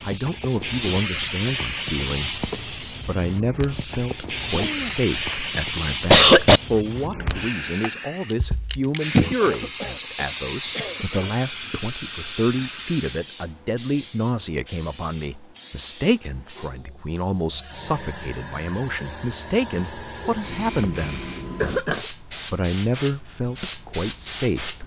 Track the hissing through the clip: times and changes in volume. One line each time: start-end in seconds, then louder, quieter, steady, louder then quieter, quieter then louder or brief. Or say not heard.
0.0-24.8 quieter then louder.